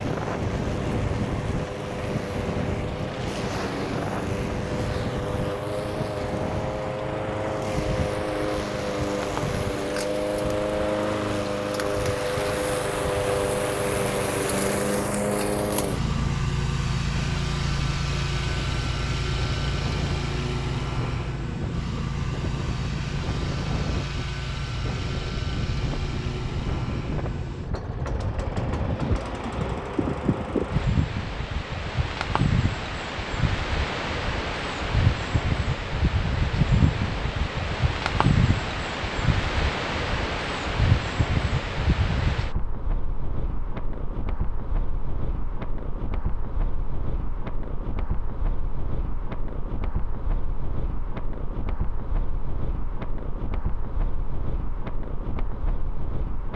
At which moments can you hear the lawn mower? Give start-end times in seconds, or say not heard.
0.0-30.9.